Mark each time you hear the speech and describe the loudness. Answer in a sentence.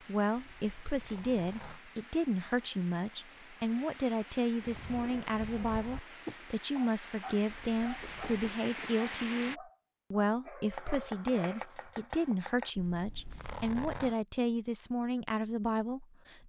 You can hear the speech from 0.1 to 16.4 s, at a steady volume.